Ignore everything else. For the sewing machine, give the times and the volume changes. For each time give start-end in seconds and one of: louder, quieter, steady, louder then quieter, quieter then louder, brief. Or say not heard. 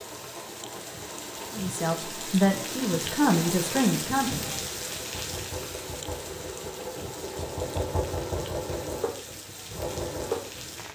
0.0-10.9 louder.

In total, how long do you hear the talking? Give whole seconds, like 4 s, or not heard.
3 s.